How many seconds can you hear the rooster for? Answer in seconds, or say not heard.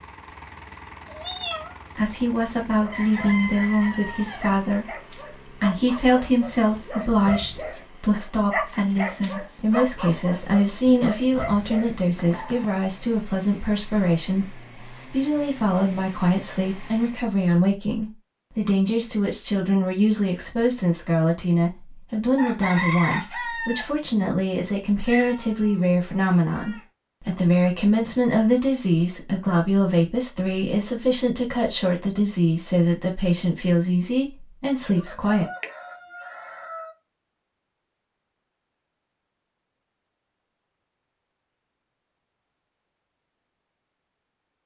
5 s.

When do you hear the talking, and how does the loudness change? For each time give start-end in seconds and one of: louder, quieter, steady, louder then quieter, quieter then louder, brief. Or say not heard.
1.9-35.5 steady.